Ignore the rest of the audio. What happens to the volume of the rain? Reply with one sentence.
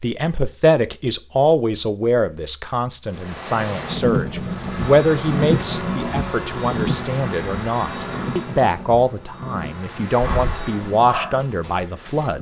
The volume of the rain goes down.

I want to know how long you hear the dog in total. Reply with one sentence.
You can hear the dog for 2 seconds altogether.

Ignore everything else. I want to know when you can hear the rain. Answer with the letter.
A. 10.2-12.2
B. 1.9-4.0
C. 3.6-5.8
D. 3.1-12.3
D.